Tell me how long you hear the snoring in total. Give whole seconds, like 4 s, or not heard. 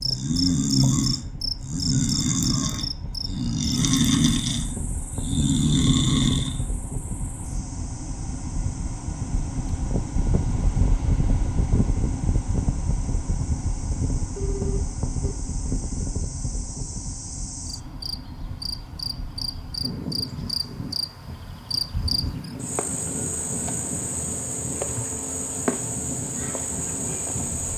7 s.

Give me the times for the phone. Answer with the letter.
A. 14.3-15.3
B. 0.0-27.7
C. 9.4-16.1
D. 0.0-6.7
A.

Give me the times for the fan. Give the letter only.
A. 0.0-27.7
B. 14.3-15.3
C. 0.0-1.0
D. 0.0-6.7
A.